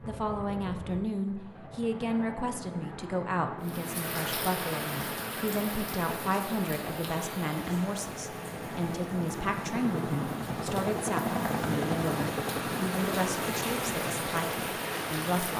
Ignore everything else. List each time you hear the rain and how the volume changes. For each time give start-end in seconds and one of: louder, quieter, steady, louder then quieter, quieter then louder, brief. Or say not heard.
3.6-15.5 quieter then louder.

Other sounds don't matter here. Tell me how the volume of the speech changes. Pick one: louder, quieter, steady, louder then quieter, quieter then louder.
steady.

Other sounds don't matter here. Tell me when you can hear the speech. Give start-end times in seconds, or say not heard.
0.1-15.5.